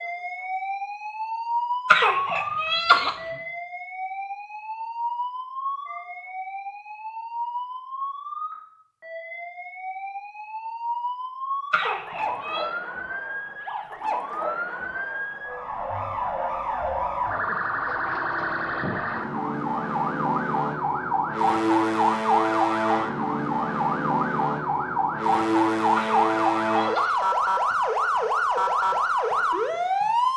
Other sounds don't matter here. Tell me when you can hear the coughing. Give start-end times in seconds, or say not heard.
1.9-3.1, 11.7-12.7, 25.9-27.2.